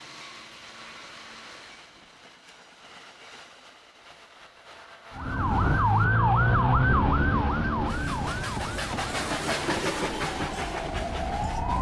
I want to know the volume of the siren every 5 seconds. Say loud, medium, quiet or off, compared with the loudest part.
off, loud, medium.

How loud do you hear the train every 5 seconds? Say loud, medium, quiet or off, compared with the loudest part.
quiet, loud, loud.